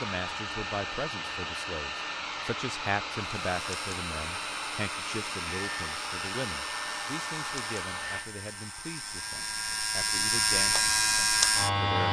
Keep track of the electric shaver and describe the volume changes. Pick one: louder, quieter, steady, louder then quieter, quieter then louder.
louder.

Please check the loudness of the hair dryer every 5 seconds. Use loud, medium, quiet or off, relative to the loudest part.
loud, loud, off.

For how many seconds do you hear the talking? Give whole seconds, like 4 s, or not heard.
12 s.